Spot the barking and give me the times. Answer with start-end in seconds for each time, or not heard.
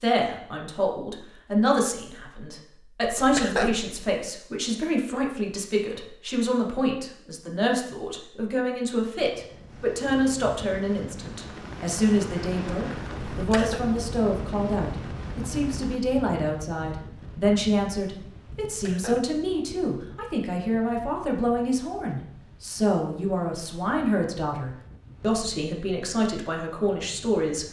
not heard.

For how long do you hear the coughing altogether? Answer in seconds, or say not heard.
2 s.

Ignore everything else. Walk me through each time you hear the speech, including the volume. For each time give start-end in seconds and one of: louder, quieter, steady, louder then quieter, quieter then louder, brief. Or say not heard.
0.0-27.6 steady.